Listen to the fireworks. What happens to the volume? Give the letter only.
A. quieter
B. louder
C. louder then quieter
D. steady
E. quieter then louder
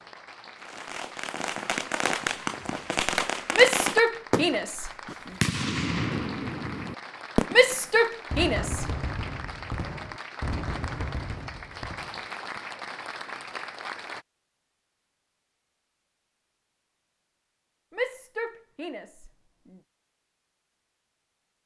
A.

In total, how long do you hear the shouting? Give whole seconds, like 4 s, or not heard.
5 s.